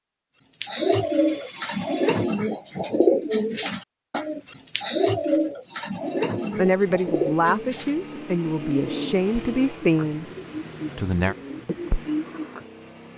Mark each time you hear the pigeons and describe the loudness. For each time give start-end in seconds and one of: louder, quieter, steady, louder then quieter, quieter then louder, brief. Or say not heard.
0.6-12.7 quieter.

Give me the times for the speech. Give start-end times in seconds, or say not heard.
6.5-10.2, 10.9-11.3.